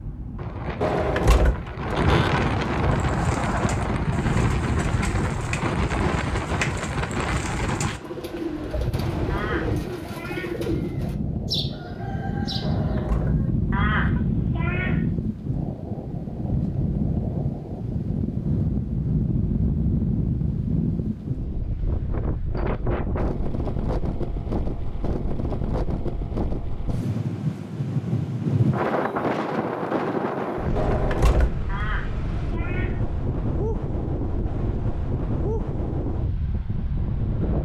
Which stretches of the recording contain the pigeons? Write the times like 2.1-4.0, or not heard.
3.0-13.5.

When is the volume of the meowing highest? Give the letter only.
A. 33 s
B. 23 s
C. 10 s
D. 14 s
D.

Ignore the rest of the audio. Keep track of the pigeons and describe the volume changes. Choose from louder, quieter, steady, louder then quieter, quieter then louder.
louder.